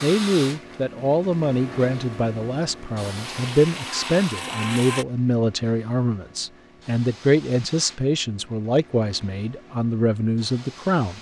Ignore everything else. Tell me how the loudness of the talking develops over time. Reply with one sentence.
The loudness of the talking stays about the same.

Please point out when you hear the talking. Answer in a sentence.
The talking can be heard from 0.0 to 11.1 s.